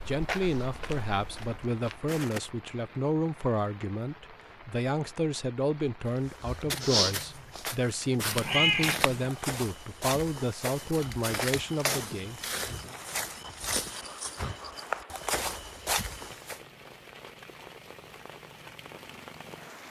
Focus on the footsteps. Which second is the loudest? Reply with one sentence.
The loudest moment of the footsteps is at 7 seconds.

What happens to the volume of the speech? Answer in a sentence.
The volume of the speech stays about the same.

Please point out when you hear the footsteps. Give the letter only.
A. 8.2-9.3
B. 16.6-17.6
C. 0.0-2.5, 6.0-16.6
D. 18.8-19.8
C.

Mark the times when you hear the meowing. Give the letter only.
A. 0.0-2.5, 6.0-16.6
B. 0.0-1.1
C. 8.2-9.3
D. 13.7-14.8
C.